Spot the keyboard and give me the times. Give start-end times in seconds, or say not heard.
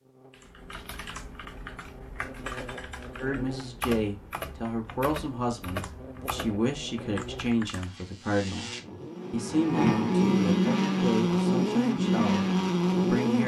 0.3-8.0.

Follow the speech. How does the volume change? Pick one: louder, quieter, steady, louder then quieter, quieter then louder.
steady.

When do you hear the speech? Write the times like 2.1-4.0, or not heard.
3.1-8.7, 9.3-13.4.